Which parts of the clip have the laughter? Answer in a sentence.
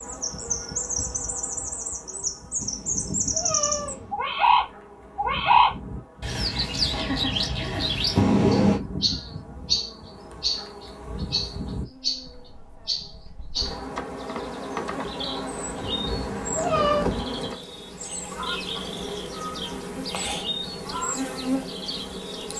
You can hear the laughter from 6.9 to 8.1 s.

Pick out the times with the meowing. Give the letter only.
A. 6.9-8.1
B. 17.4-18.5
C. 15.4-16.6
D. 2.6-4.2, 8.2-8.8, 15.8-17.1
D.